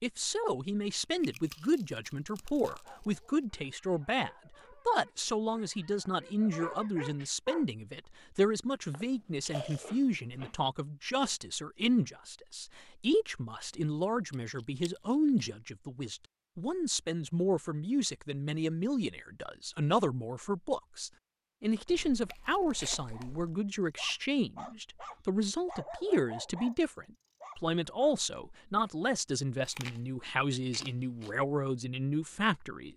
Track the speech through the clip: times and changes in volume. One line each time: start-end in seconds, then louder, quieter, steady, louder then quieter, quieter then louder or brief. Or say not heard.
0.0-32.9 steady.